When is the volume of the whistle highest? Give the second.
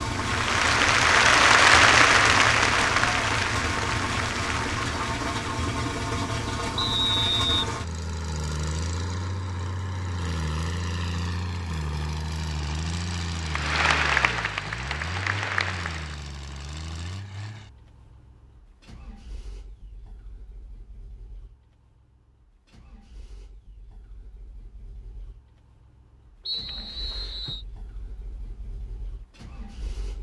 7 s.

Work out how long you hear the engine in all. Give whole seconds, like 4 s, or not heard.
30 s.